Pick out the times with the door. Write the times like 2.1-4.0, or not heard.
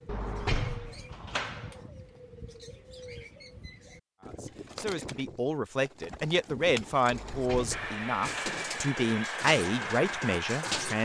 0.1-1.8, 7.1-8.6.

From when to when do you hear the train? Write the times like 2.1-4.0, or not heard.
7.7-11.0.